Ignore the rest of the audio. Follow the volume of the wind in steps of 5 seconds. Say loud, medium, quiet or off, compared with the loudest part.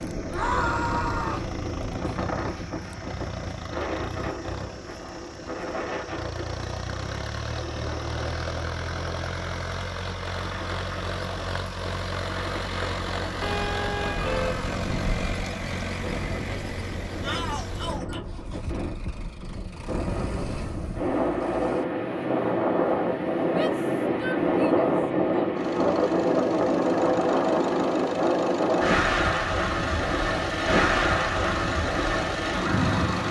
medium, quiet, quiet, quiet, loud, loud, loud.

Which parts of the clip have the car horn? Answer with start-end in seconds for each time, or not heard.
13.4-15.4.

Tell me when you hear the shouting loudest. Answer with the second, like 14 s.
1 s.